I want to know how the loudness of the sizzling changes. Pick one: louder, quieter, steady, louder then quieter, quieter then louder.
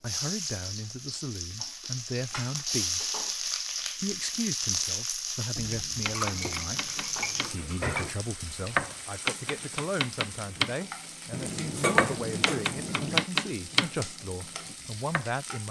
quieter.